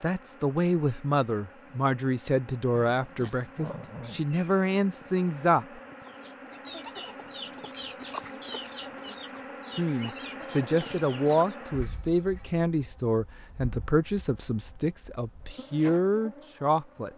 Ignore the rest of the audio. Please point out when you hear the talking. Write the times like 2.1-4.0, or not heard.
0.0-5.8, 9.8-17.1.